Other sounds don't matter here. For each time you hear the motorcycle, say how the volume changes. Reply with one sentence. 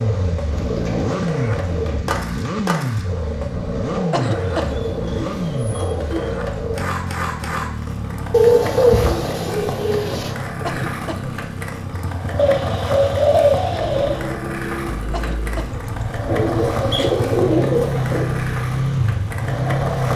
The motorcycle can be heard from 0.0 to 20.1 s, getting quieter then louder.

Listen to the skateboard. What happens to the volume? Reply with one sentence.
The loudness of the skateboard stays about the same.